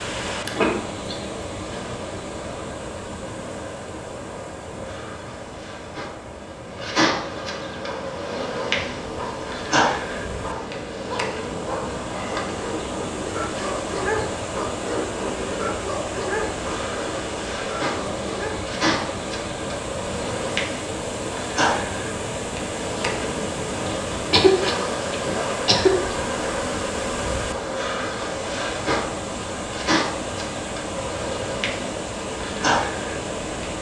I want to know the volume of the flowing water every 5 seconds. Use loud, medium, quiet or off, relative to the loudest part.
loud, medium, loud, loud, loud, loud, loud.